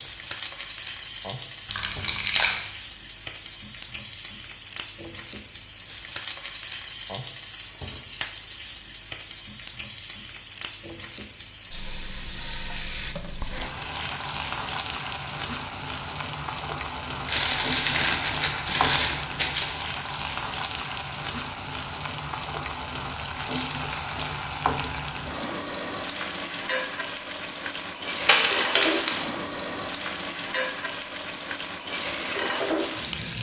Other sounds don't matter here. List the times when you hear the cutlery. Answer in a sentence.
The cutlery can't be heard in this clip.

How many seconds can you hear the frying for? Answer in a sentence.
The frying can be heard for 33 seconds in total.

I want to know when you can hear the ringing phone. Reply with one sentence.
The ringing phone can't be heard in this clip.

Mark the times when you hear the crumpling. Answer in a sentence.
You can hear the crumpling from 1.6 to 2.6 s, from 17.2 to 19.8 s and from 28.2 to 29.2 s.